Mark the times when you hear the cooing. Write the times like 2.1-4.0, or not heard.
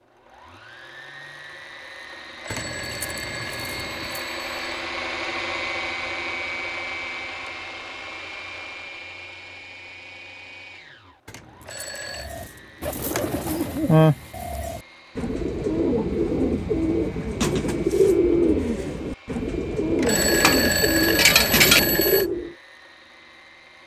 12.2-22.6.